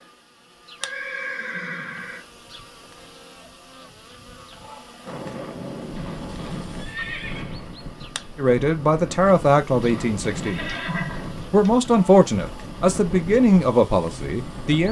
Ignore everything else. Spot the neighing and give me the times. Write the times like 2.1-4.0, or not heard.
0.8-2.2, 6.8-7.7, 9.9-11.9.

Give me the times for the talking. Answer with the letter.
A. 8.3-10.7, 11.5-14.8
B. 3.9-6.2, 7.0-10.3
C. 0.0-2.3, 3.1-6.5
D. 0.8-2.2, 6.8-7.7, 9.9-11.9
A.